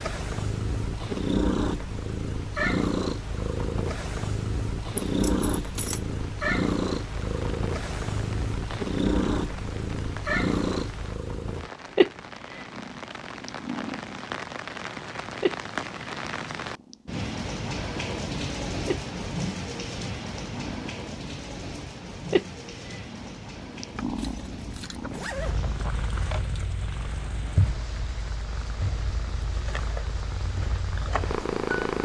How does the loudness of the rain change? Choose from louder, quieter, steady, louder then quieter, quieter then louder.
louder then quieter.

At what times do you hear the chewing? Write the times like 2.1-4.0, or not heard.
not heard.